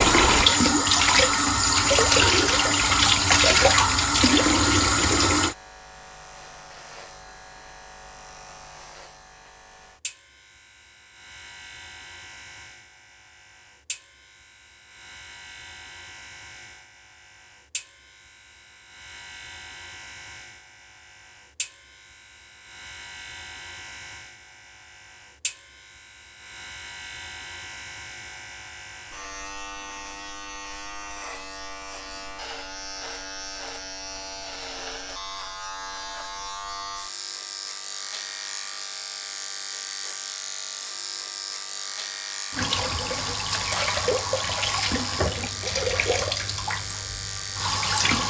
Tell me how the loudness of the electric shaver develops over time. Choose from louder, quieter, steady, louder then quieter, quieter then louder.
louder.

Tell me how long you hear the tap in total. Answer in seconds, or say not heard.
11 s.